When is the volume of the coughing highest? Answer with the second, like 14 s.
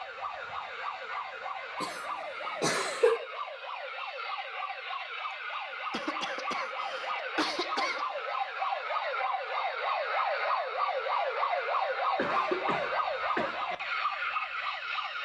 3 s.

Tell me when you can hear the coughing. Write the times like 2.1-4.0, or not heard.
1.8-3.2, 5.7-8.1, 12.2-13.6.